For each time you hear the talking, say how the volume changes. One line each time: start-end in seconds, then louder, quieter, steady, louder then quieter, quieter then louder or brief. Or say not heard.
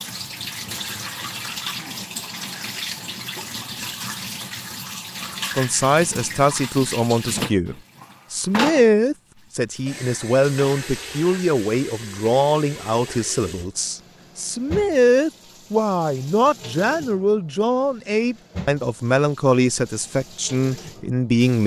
5.5-21.6 steady.